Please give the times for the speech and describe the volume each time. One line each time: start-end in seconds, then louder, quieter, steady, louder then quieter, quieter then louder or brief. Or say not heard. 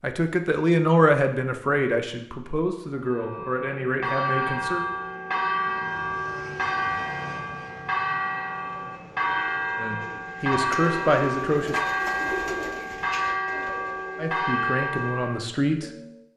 0.0-4.8 quieter
9.8-11.8 brief
14.2-15.9 brief.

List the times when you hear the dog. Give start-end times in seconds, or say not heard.
not heard.